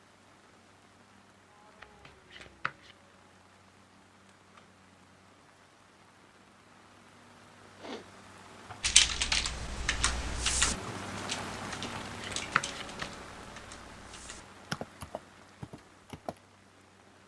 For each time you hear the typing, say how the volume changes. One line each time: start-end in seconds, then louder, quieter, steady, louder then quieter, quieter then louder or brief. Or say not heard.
8.8-16.4 quieter then louder.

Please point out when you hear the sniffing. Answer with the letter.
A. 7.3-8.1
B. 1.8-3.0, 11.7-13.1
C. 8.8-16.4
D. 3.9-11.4
A.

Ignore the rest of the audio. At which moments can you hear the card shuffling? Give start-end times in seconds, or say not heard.
1.8-3.0, 11.7-13.1.